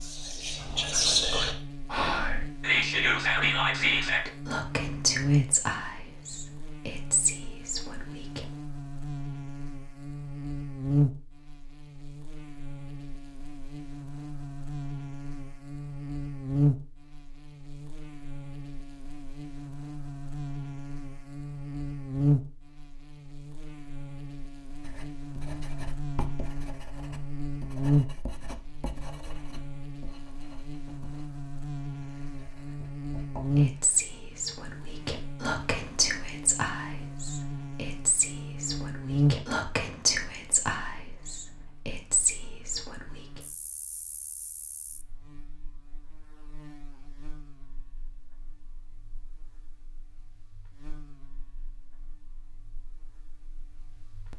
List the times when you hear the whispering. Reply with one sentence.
The whispering can be heard from 0.0 to 8.4 s and from 33.5 to 43.0 s.